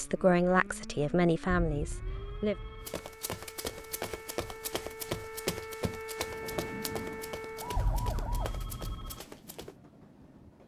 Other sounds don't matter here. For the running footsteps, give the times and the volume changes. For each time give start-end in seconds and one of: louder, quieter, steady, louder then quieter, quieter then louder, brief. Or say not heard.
2.9-9.8 quieter.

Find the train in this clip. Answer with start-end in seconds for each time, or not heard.
6.2-10.6.